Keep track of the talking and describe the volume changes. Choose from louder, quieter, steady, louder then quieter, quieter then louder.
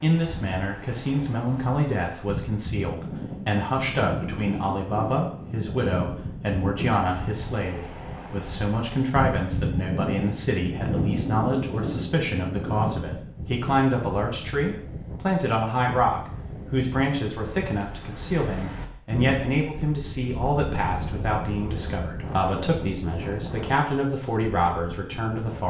steady.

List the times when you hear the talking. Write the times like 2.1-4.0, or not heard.
0.0-25.6.